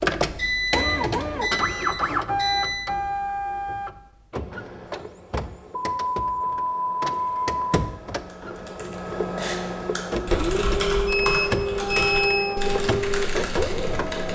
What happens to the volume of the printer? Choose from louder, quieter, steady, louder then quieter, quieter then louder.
quieter then louder.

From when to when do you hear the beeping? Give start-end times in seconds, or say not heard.
0.3-2.9, 5.9-7.8, 11.1-12.6.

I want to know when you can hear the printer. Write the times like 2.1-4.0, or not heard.
0.0-14.3.